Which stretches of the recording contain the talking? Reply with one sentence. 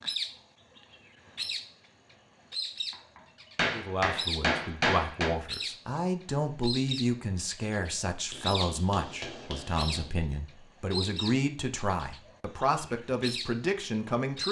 The talking can be heard from 3.6 to 14.4 s.